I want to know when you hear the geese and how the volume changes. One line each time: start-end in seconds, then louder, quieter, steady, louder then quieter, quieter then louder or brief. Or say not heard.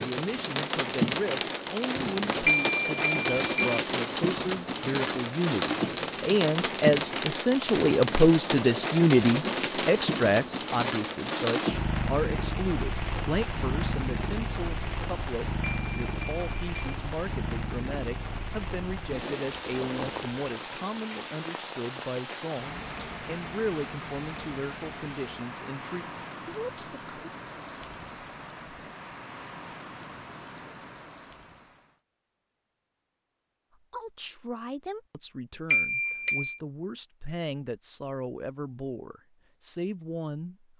not heard.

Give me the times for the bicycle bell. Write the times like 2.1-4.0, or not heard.
2.5-3.8, 15.6-16.9, 35.7-36.5.